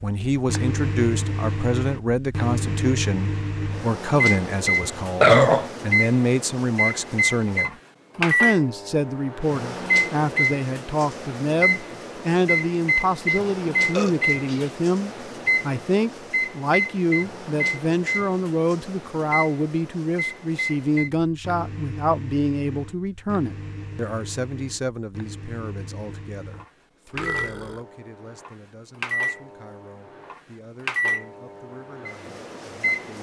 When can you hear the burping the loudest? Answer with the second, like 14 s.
5 s.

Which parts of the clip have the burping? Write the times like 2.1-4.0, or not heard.
4.8-5.7, 13.2-14.7, 27.1-27.8.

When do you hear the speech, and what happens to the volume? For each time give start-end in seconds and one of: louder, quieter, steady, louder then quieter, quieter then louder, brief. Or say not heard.
0.0-33.1 quieter.